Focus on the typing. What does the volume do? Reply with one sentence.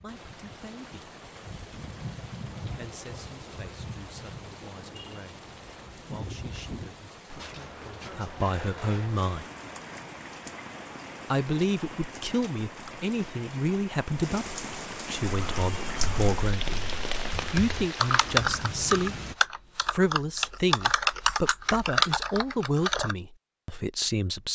The loudness of the typing goes up.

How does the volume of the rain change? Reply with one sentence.
The loudness of the rain goes up.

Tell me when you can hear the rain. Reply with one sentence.
The rain can be heard from 0.0 to 19.4 s.